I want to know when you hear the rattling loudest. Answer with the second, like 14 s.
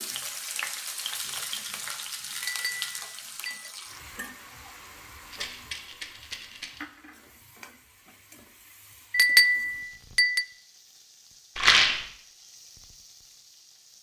12 s.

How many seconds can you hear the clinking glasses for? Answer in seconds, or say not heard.
3 s.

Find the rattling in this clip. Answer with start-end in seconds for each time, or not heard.
1.2-3.0, 5.3-6.8, 11.6-12.1.